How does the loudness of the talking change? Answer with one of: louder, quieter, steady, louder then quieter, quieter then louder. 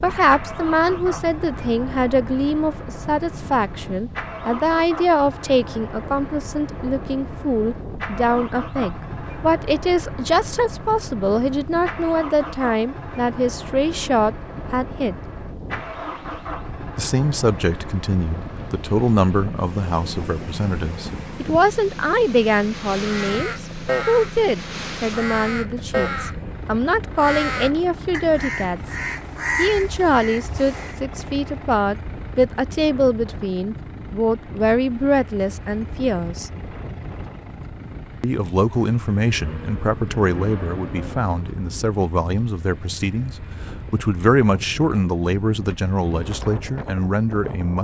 steady.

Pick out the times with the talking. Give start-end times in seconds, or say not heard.
0.0-15.2, 16.9-28.9, 29.6-36.5, 38.2-47.7.